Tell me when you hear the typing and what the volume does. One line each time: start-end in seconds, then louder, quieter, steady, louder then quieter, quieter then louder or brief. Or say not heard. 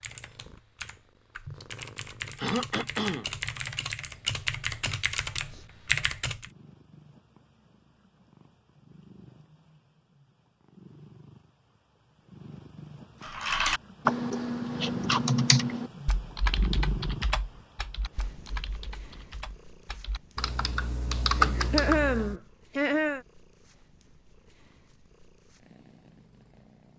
0.0-6.5 louder
13.2-22.4 quieter then louder.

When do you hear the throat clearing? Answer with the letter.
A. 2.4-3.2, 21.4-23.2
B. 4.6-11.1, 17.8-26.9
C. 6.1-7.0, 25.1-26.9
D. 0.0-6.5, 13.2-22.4
A.